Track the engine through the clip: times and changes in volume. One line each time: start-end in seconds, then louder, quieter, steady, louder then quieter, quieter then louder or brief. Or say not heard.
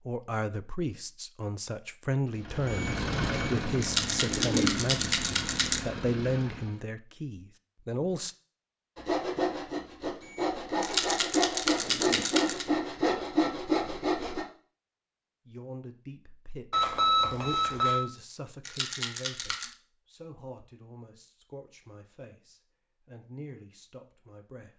2.3-6.8 quieter.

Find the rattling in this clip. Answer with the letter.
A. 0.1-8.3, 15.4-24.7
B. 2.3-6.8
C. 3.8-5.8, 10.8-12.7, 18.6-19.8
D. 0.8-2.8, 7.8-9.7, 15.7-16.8
C.